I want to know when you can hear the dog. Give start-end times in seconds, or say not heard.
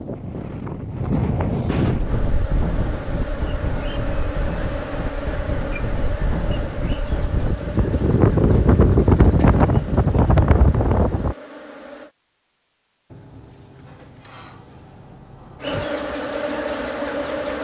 not heard.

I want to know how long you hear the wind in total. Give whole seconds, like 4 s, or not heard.
11 s.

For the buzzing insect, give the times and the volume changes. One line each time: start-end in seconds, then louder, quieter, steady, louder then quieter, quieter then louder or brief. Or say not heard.
2.0-12.1 quieter
15.6-17.5 brief.